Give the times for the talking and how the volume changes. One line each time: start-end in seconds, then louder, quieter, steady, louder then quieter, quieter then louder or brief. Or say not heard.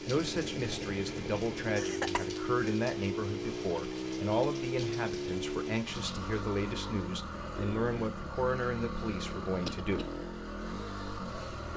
0.1-10.1 steady.